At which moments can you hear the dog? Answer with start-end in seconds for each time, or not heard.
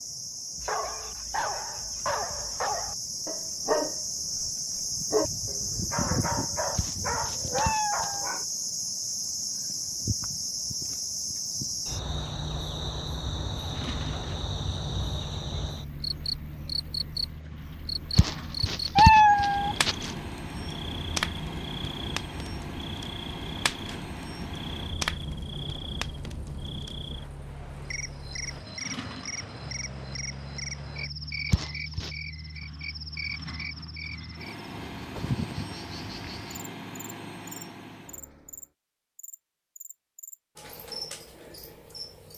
0.6-8.4.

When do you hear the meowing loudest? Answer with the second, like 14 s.
19 s.